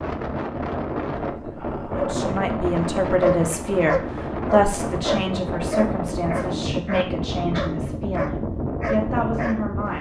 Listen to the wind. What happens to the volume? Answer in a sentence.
The loudness of the wind stays about the same.